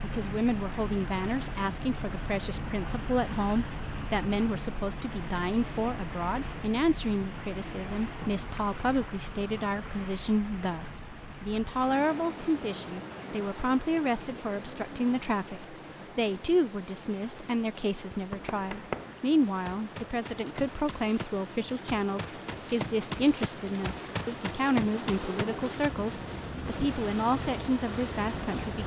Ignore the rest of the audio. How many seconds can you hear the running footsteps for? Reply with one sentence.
You can hear the running footsteps for 8 seconds altogether.